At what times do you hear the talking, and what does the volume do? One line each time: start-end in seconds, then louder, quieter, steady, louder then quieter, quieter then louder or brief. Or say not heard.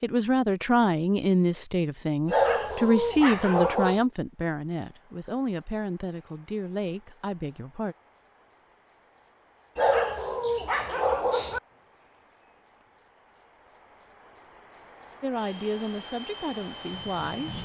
0.0-8.0 quieter
15.2-17.6 brief.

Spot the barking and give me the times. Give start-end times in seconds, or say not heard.
2.2-4.0, 9.8-11.6.